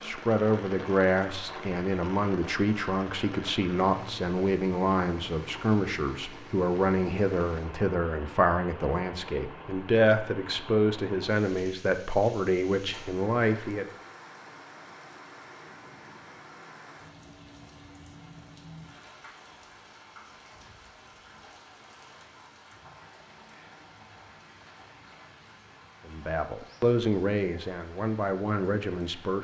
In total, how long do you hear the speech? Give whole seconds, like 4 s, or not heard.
17 s.